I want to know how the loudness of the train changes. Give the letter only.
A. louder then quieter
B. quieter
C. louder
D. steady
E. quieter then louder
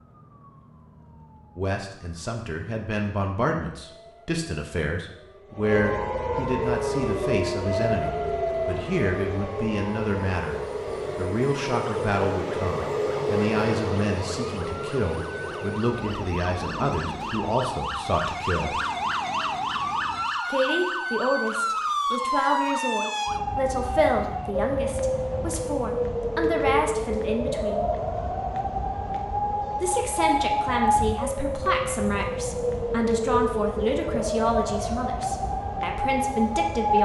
A.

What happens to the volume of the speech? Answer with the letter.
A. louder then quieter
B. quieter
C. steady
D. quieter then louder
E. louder
C.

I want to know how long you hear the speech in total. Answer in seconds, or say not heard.
32 s.